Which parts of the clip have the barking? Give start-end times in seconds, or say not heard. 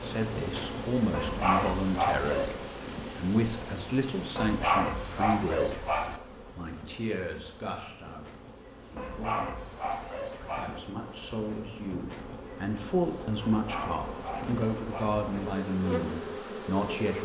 1.1-2.6, 4.3-6.2, 8.9-10.8, 13.4-15.2.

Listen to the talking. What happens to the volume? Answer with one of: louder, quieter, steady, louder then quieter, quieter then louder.
quieter then louder.